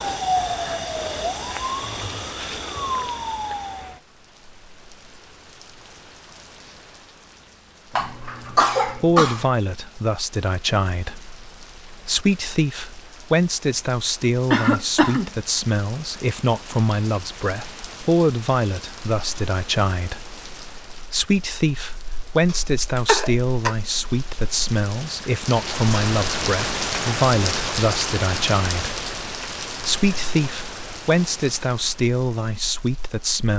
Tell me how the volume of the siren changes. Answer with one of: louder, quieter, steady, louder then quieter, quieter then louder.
steady.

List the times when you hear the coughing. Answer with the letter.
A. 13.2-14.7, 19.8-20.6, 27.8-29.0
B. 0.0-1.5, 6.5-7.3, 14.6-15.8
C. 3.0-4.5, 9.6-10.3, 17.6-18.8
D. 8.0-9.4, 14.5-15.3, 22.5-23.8
D.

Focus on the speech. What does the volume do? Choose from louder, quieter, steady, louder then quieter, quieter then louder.
steady.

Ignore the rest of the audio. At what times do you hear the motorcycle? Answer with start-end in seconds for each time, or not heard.
not heard.